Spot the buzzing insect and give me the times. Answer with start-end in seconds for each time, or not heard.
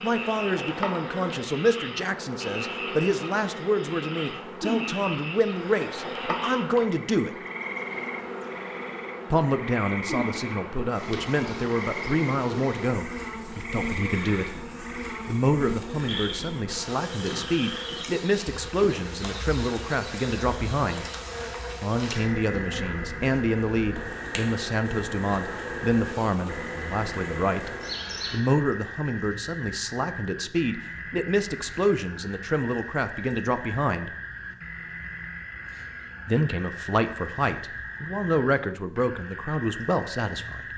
0.0-28.4.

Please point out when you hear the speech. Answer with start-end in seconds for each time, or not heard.
0.0-7.3, 9.3-14.6, 15.2-21.1, 21.8-27.7, 28.3-34.1, 36.2-40.6.